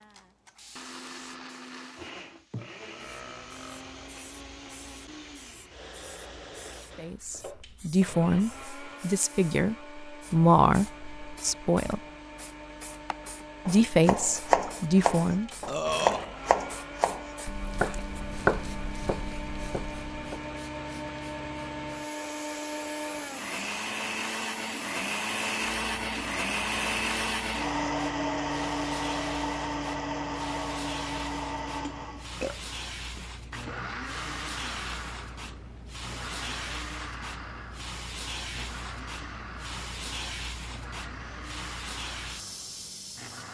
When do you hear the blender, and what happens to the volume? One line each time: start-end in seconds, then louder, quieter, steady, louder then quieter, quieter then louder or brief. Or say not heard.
0.0-43.4 louder then quieter.